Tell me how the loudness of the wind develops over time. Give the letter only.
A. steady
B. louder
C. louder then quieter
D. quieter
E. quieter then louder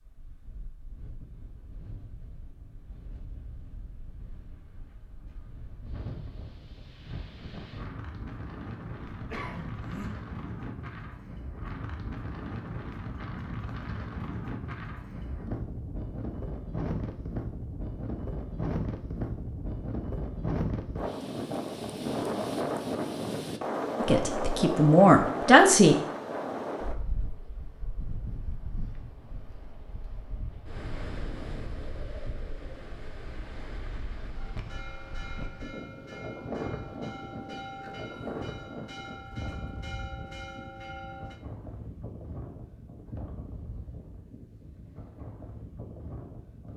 C.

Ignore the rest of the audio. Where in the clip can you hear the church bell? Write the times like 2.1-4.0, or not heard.
34.3-41.4.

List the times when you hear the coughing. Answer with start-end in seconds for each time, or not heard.
9.1-10.1.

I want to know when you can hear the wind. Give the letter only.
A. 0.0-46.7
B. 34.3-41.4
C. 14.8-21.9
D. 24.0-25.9
A.